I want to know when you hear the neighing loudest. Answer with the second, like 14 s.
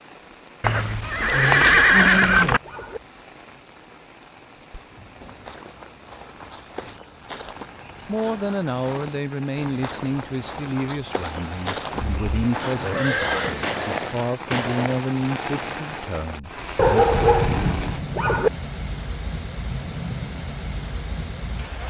2 s.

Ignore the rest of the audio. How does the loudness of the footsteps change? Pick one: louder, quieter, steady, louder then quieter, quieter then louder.
louder.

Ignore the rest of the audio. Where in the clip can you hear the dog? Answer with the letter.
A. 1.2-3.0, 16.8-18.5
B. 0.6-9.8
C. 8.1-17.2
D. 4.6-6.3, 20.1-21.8
A.